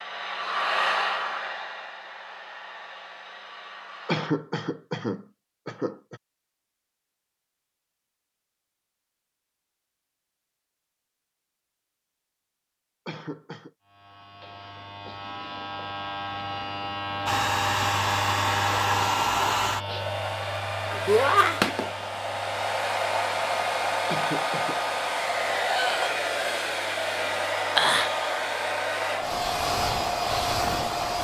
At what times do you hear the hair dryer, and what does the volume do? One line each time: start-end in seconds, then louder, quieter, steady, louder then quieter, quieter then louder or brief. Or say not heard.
0.0-4.3 quieter
17.2-31.1 steady.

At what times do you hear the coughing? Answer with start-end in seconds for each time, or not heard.
4.0-6.2, 13.1-13.7, 24.1-24.8.